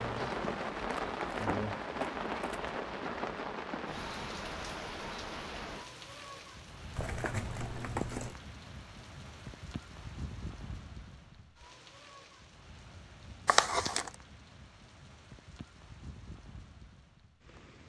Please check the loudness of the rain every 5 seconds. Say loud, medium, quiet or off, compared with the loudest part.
loud, medium, quiet, quiet.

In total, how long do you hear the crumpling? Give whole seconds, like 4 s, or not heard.
4 s.